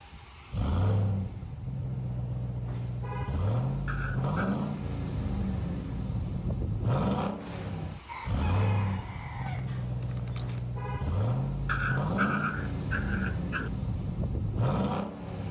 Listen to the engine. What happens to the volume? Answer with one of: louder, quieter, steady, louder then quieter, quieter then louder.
steady.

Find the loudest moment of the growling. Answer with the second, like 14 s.
12 s.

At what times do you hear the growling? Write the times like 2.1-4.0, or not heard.
3.9-4.6, 11.7-13.7.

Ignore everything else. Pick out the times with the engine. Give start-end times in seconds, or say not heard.
0.0-15.4.